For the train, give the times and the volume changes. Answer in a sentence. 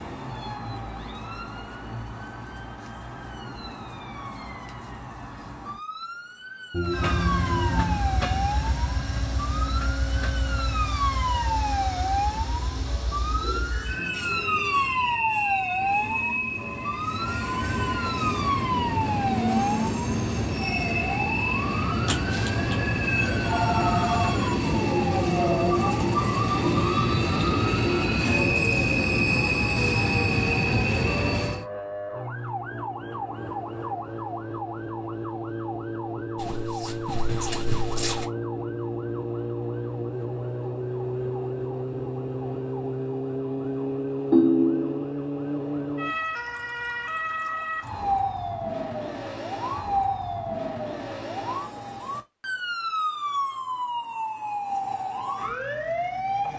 The train can be heard from 6.8 to 31.6 s, getting louder.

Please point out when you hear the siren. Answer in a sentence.
The siren can be heard from 0.0 to 56.5 s.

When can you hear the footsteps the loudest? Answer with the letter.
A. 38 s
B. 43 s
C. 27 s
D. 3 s
A.